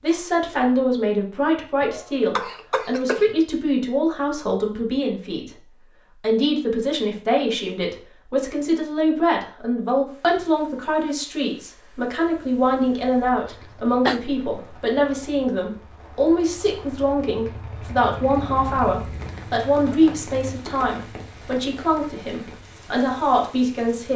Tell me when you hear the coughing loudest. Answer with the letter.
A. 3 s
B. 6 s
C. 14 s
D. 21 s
C.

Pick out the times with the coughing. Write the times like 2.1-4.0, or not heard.
1.8-3.4, 13.4-14.2, 19.9-20.4.